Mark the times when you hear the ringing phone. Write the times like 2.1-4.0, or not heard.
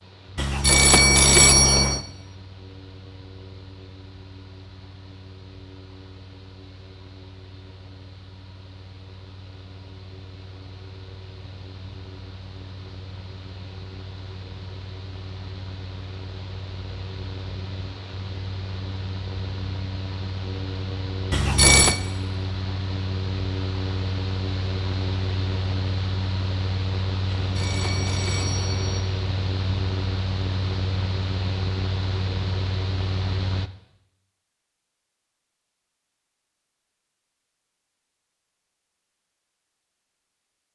0.3-2.0, 21.3-22.0, 27.4-29.1.